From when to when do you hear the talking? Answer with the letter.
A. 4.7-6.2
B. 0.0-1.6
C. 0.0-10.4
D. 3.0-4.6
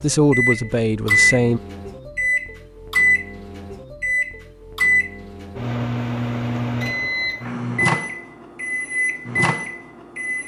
B.